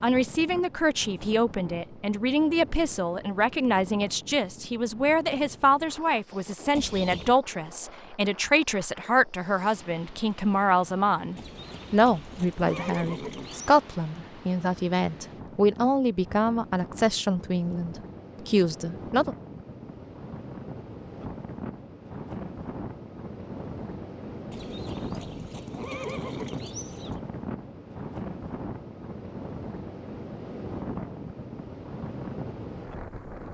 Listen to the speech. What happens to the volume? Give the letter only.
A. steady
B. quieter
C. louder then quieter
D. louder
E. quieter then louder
A.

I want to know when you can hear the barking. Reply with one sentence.
The barking can't be heard in this clip.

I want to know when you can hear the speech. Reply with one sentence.
You can hear the speech from 0.0 to 19.4 s.